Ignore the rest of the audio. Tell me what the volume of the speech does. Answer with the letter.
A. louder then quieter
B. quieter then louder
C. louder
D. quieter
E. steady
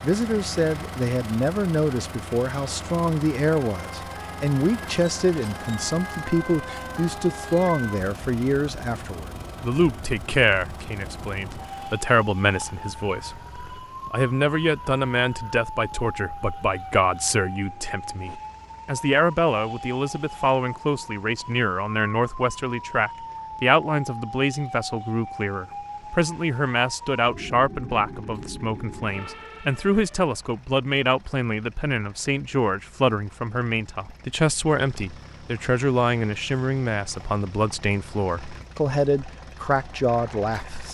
E.